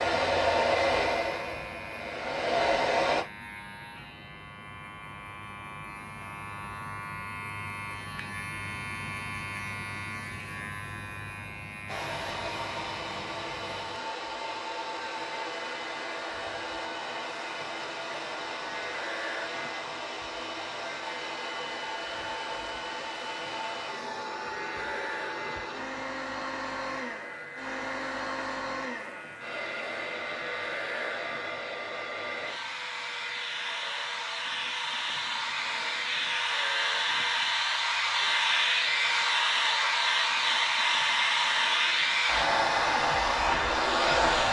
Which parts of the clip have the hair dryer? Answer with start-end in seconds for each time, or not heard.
0.0-3.2, 11.8-44.4.